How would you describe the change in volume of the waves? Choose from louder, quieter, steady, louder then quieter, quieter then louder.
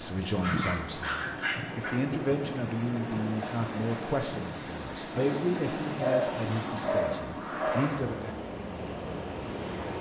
steady.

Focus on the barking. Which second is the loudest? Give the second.
6 s.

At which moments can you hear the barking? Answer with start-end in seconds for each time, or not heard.
0.4-1.9, 6.0-7.8.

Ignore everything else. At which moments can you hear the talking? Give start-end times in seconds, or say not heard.
0.0-8.3.